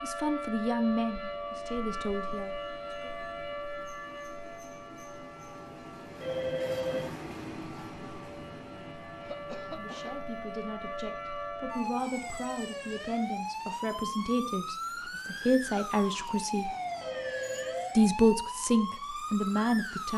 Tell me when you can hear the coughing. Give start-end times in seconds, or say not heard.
9.2-10.3.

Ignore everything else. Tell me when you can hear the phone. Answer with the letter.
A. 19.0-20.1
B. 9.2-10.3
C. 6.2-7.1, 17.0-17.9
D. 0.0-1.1
C.